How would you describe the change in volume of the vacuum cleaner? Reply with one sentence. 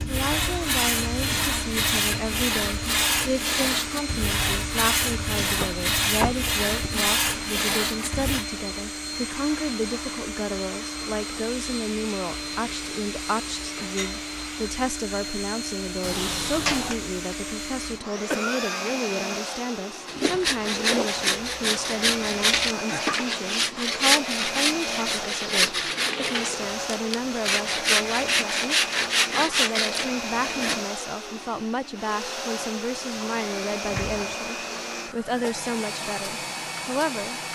The loudness of the vacuum cleaner stays about the same.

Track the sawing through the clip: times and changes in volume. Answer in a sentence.
The sawing can be heard from 0.0 to 8.4 s, at a steady volume; and from 20.1 to 30.8 s, at a steady volume.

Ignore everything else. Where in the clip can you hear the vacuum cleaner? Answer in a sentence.
You can hear the vacuum cleaner from 0.0 to 37.4 s.